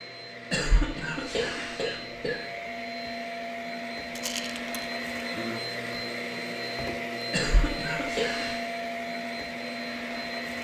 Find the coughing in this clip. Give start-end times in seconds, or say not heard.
0.5-2.4, 7.3-8.6.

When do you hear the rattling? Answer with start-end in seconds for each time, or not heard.
4.1-4.9.